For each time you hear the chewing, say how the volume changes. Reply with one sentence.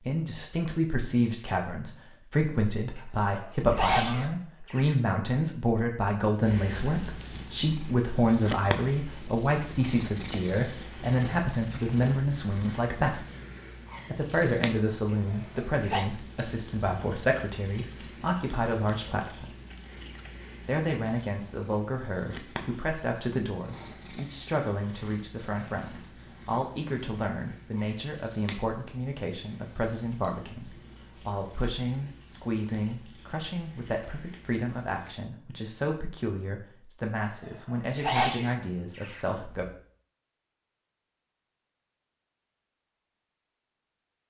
You can't hear the chewing here.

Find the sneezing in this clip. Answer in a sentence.
You can hear the sneezing from 3.0 to 5.0 s, from 15.3 to 16.1 s and from 37.4 to 39.2 s.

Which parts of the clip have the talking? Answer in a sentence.
You can hear the talking from 0.0 to 13.3 s, from 14.1 to 19.5 s and from 20.6 to 39.6 s.